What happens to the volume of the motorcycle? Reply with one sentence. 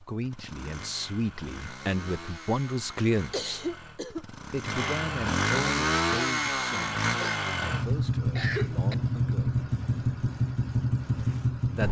The volume of the motorcycle goes up.